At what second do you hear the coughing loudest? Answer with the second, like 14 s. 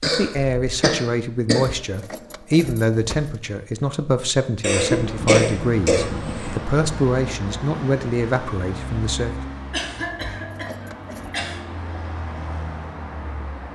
5 s.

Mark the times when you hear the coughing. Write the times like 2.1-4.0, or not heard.
0.0-1.7, 4.6-6.6, 9.7-11.6.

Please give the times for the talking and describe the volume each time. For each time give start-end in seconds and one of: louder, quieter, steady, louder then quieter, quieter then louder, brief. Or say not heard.
0.0-9.4 steady.